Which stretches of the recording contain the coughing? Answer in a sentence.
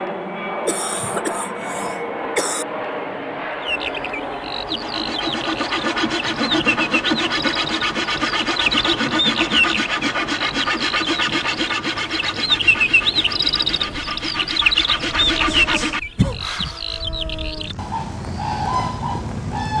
The coughing can be heard from 0.7 to 2.6 s and from 16.1 to 16.8 s.